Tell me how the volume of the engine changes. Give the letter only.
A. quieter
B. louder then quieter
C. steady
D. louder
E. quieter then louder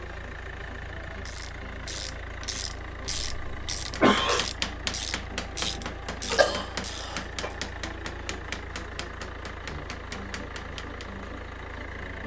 C.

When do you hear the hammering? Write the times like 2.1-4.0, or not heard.
4.0-11.1.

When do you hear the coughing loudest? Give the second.
4 s.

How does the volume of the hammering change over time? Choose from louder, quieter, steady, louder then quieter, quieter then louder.
quieter.